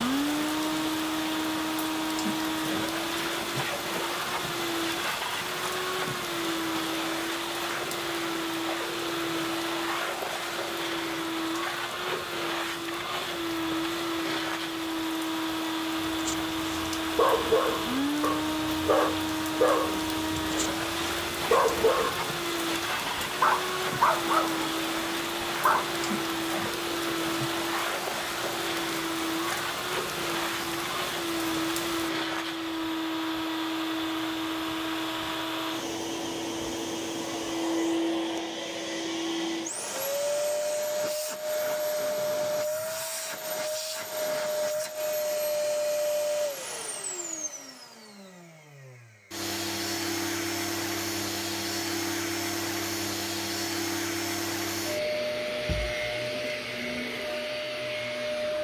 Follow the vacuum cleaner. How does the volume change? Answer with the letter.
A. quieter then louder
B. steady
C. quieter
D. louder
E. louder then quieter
B.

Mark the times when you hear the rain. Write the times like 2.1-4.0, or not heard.
0.0-32.1.